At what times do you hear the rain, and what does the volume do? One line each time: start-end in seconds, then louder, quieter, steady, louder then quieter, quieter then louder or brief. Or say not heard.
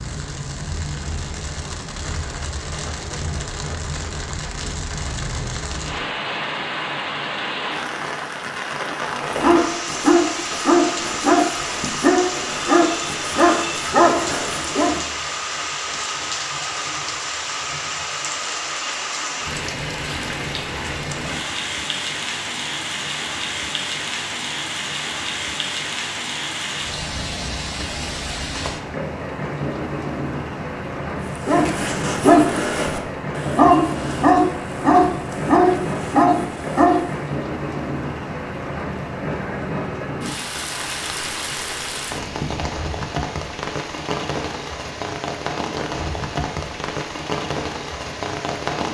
0.0-48.8 steady.